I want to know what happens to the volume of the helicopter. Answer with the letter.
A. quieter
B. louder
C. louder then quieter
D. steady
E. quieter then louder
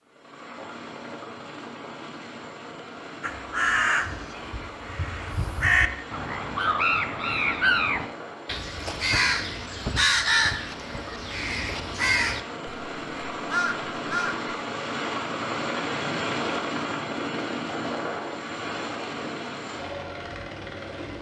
B.